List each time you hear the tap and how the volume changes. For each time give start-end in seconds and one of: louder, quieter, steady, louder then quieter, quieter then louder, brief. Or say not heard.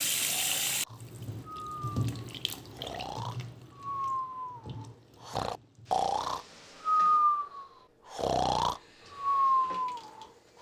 0.0-10.5 quieter.